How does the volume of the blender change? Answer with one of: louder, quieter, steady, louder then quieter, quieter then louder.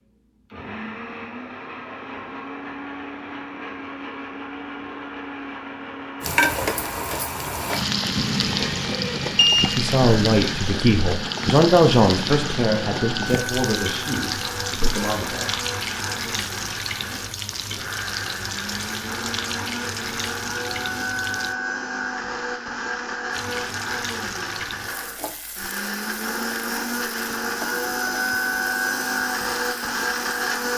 louder.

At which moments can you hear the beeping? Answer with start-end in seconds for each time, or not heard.
8.4-9.7.